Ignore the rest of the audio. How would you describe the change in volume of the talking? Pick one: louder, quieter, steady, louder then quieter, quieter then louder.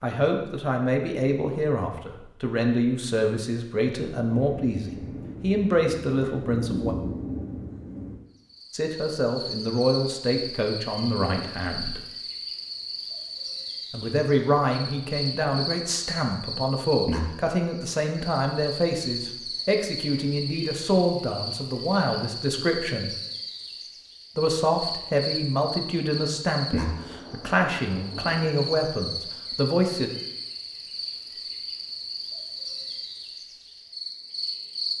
steady.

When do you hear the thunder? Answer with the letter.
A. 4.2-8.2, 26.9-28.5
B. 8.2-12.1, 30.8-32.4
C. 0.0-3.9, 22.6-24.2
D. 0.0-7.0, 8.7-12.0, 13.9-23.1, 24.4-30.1
A.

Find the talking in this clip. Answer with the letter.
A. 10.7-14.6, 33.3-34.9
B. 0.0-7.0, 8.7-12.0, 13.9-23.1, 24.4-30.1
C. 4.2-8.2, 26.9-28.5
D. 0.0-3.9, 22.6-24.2
B.